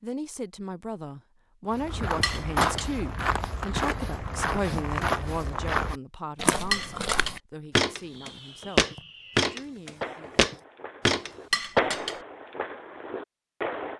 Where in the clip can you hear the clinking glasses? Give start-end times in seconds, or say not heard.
2.2-2.9, 6.7-7.3, 11.5-12.2.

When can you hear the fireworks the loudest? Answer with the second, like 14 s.
12 s.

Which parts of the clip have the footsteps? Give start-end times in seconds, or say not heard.
1.7-11.3.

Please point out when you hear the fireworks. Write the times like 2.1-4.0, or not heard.
8.1-13.9.